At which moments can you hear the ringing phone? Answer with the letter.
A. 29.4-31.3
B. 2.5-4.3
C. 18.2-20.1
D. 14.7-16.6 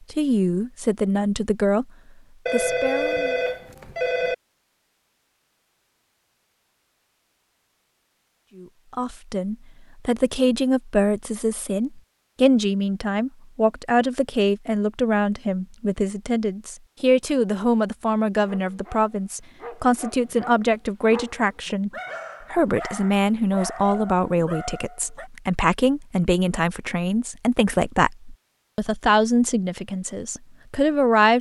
B.